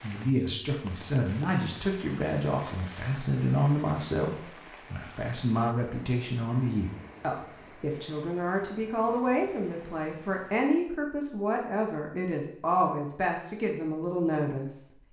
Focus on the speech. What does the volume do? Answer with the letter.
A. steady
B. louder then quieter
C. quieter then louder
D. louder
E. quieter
A.